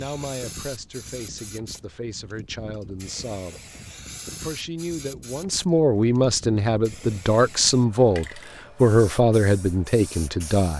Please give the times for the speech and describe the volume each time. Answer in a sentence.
You can hear the speech from 0.0 to 10.7 s, getting louder.